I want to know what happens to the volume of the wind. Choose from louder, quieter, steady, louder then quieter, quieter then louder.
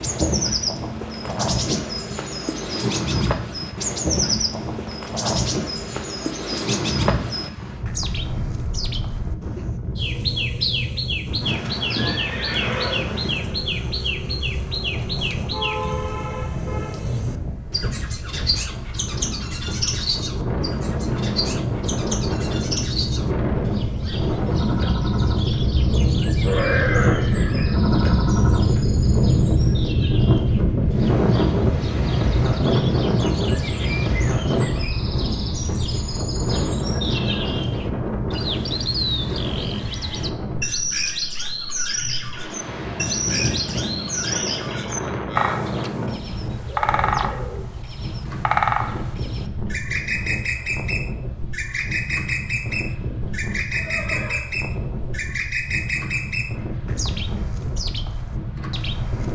louder then quieter.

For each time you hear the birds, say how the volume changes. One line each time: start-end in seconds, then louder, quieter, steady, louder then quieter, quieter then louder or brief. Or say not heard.
0.0-59.3 quieter then louder.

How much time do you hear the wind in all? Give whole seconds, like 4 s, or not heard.
59 s.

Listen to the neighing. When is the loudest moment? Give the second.
27 s.